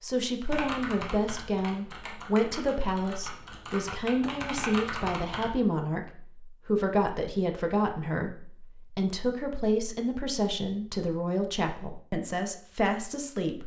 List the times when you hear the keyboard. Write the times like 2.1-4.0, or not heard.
0.5-5.5.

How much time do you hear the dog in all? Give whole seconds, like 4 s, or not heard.
not heard.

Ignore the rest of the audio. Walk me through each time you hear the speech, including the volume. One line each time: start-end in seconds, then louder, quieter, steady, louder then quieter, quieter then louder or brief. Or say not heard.
0.0-13.6 steady.